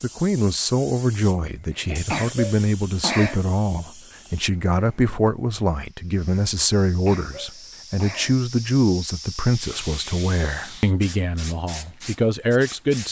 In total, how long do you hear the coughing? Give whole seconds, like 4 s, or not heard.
3 s.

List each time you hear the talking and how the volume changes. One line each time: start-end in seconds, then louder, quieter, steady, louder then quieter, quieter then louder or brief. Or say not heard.
0.0-13.0 steady.